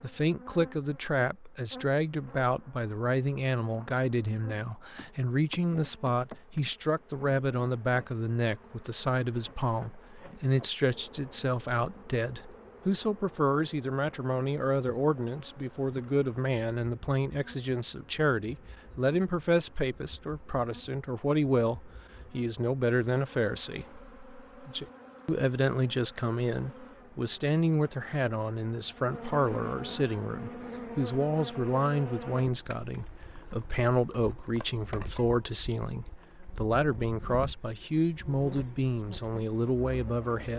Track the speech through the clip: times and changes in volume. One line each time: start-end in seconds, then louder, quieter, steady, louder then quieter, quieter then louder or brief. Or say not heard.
0.0-40.5 steady.